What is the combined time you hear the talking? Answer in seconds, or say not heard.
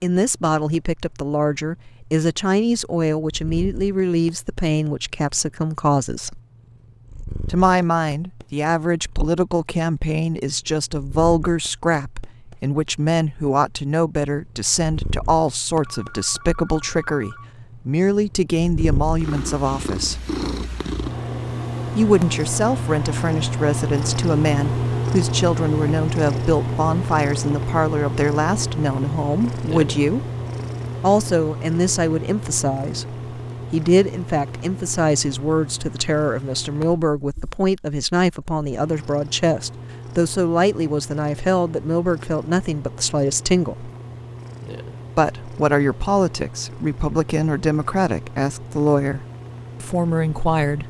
46 s.